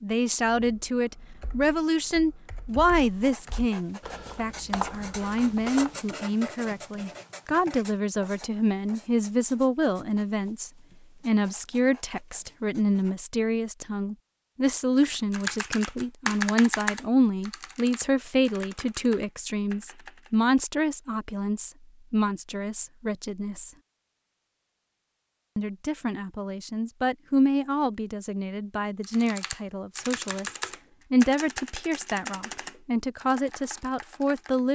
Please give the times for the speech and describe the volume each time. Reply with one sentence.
You can hear the speech from 0.0 to 23.7 s, at a steady volume; and from 25.6 to 34.7 s, getting quieter then louder.